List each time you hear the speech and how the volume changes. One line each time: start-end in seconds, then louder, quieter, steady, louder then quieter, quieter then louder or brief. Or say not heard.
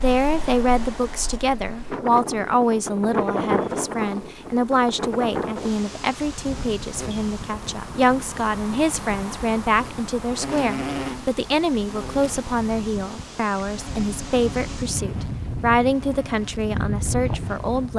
0.0-17.9 steady.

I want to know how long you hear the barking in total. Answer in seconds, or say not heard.
not heard.